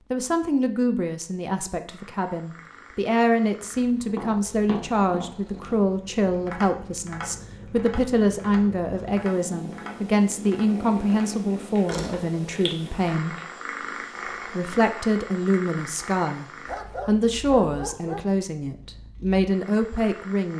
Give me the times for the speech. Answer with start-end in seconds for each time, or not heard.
0.1-13.3, 14.4-20.5.